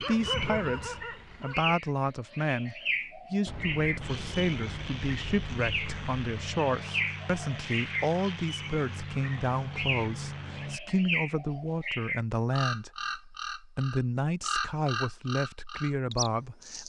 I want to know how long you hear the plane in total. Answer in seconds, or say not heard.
7 s.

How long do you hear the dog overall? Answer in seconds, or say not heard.
2 s.